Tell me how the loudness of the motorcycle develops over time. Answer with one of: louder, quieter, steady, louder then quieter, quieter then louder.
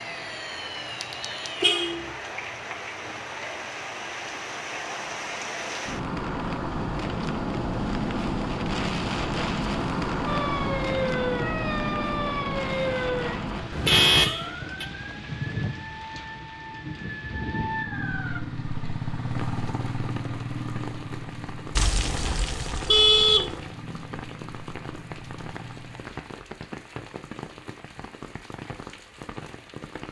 quieter.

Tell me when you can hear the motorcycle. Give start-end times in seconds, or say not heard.
17.6-26.2.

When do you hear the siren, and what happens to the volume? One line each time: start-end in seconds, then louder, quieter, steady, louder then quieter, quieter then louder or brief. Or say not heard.
0.0-1.8 brief
10.2-18.4 quieter then louder.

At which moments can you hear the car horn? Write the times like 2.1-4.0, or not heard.
1.6-2.1, 13.7-14.8, 21.8-23.6.